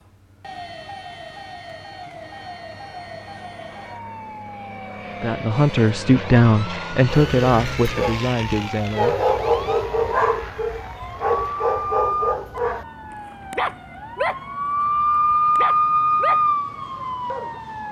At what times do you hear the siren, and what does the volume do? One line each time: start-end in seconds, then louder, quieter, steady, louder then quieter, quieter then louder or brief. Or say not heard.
0.0-17.8 louder.